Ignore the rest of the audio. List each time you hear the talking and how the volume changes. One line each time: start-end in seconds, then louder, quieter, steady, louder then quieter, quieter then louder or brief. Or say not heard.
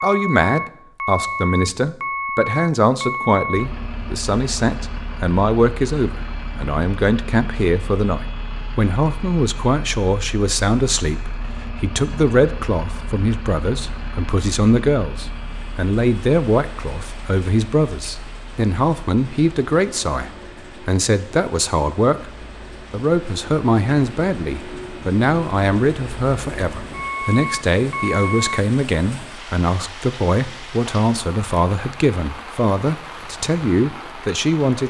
0.0-34.8 steady.